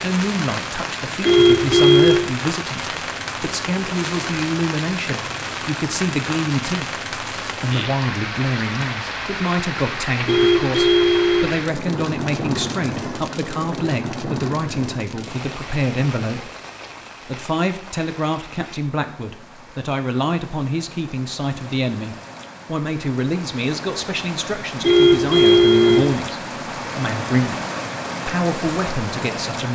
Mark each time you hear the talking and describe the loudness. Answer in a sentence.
The talking can be heard from 0.0 to 16.5 s, at a steady volume; from 17.2 to 27.6 s, at a steady volume; and briefly from 28.2 to 29.7 s.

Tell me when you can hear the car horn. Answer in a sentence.
You can hear the car horn from 1.2 to 2.2 s, from 10.2 to 11.6 s and from 24.8 to 26.1 s.